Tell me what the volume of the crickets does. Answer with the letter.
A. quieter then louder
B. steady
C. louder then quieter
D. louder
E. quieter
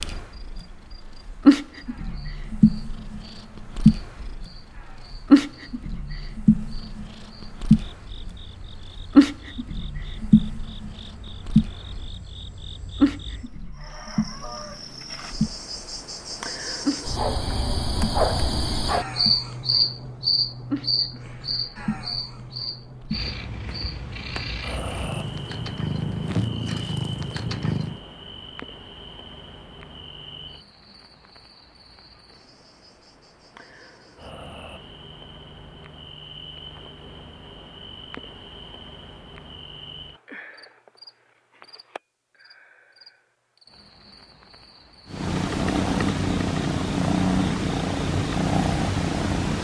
C.